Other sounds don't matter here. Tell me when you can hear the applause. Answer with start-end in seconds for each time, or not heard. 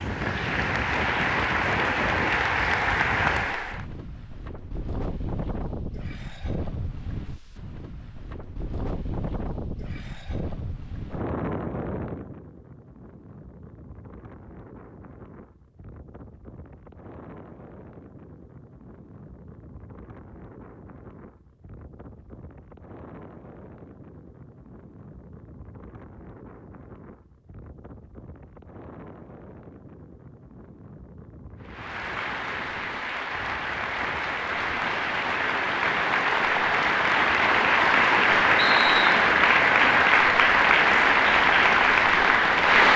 0.0-3.9, 31.6-42.9.